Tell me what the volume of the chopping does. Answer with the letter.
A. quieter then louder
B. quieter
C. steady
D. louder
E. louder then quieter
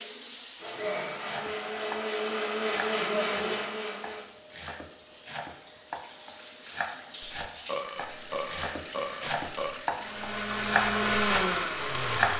D.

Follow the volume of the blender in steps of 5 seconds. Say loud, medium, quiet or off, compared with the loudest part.
loud, off, loud.